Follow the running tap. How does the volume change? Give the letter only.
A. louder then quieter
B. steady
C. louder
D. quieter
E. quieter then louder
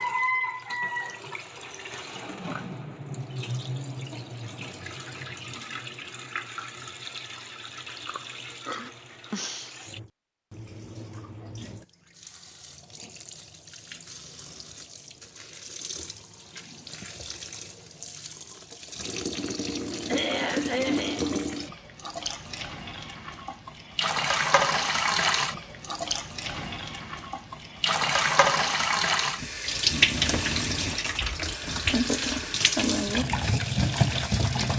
E.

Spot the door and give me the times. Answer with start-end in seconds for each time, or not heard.
not heard.